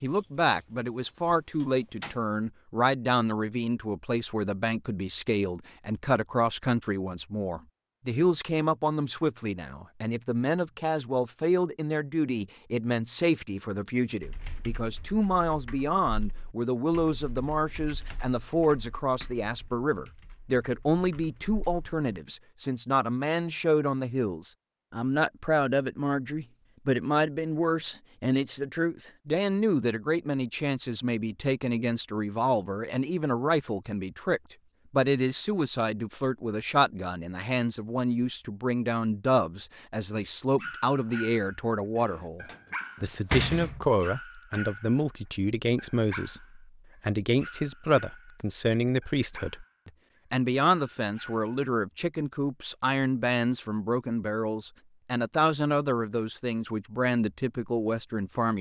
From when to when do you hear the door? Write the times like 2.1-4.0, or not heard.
0.1-2.2, 42.0-43.9.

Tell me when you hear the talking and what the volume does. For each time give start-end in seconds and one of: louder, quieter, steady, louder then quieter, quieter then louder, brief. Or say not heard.
0.0-58.5 steady.